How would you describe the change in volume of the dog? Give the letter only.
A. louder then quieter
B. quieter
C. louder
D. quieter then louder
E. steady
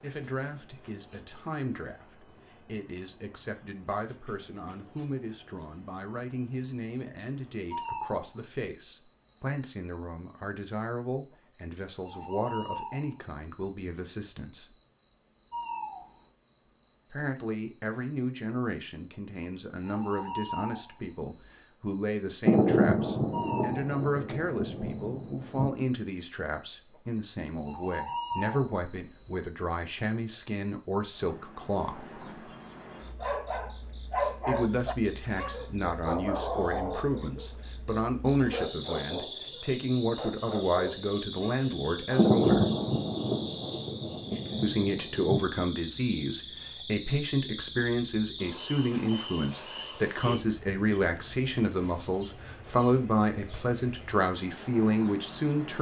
B.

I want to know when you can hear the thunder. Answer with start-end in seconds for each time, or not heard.
22.4-25.7, 42.1-45.4.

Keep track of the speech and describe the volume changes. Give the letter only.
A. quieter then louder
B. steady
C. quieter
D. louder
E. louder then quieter
D.